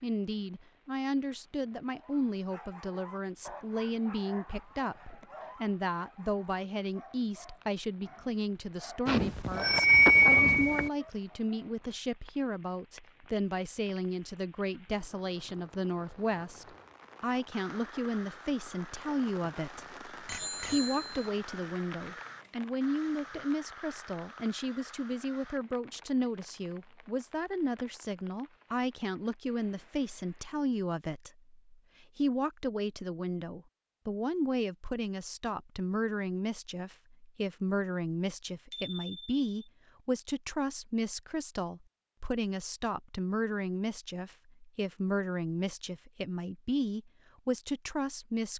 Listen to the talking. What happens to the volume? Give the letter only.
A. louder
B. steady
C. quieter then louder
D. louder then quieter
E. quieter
B.